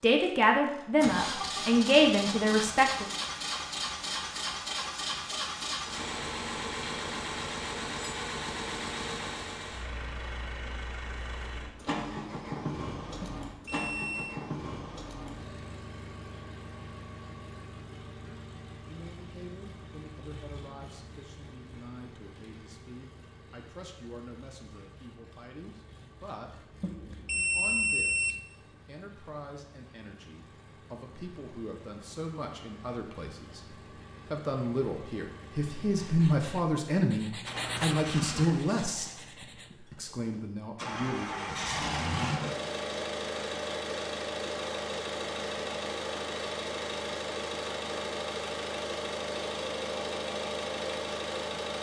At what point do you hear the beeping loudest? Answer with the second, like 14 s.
28 s.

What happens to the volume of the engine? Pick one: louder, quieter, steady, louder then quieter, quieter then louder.
quieter then louder.